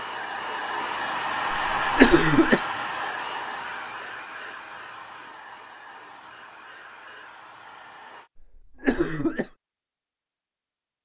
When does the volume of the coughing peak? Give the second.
2 s.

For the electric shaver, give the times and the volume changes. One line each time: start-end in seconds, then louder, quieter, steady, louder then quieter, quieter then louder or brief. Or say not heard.
not heard.